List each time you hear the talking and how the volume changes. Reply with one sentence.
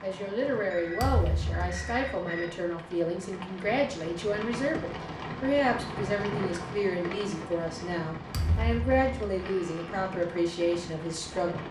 The talking can be heard from 0.0 to 11.6 s, at a steady volume.